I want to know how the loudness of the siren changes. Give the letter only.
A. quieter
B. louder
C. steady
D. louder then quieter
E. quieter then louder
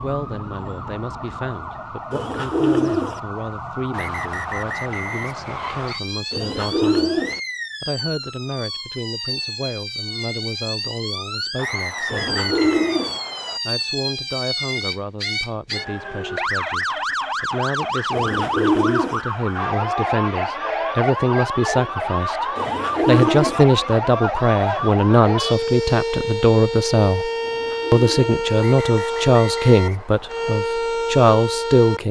B.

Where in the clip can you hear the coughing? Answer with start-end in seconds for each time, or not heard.
not heard.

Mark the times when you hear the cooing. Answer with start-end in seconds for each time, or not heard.
2.1-3.2, 6.3-7.4, 12.1-13.2, 18.1-19.2, 22.6-23.6, 27.4-28.5.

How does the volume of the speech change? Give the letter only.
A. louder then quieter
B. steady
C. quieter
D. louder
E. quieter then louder
D.